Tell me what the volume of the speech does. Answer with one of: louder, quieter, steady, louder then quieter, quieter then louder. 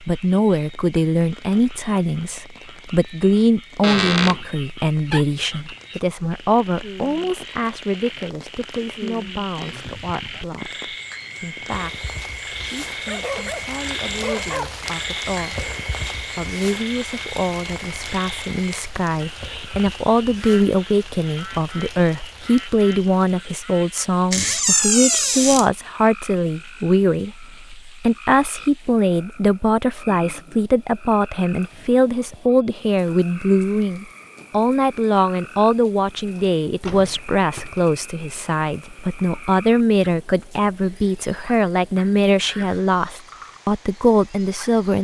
quieter then louder.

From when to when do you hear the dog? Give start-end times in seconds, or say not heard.
12.9-14.8.